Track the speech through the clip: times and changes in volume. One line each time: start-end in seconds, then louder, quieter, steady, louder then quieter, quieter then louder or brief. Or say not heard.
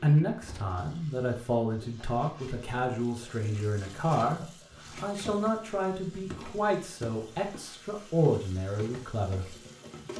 0.0-9.6 steady.